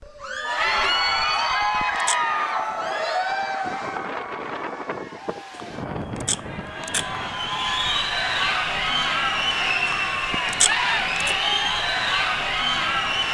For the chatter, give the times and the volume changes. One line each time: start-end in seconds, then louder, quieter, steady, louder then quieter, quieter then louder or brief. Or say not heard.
0.1-13.2 quieter then louder.